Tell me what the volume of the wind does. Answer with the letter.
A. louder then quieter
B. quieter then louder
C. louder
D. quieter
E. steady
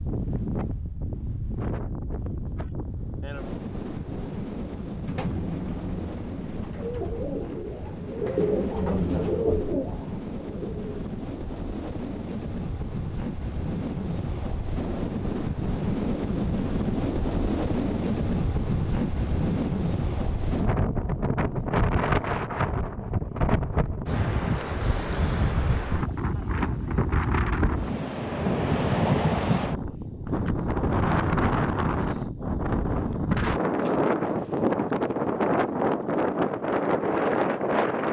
C.